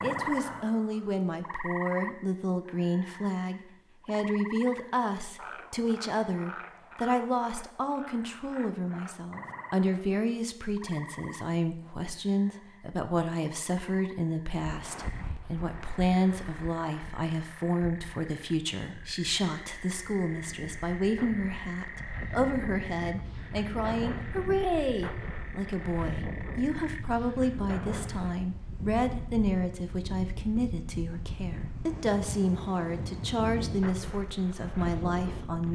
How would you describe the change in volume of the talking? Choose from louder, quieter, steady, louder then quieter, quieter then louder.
steady.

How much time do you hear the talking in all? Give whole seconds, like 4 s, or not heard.
36 s.